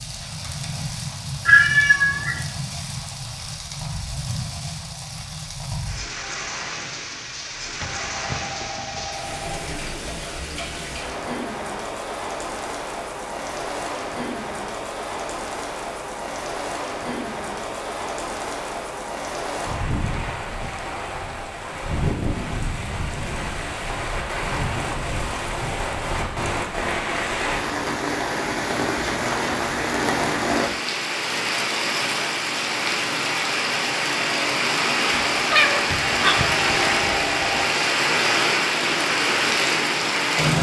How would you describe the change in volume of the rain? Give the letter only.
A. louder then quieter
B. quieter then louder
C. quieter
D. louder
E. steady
D.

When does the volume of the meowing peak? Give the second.
2 s.